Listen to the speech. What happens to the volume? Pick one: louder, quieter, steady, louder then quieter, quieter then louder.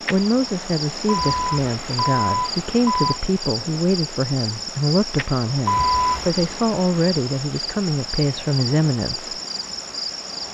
steady.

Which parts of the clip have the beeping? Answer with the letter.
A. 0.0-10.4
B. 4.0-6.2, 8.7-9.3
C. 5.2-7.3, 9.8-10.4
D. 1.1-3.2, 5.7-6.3
D.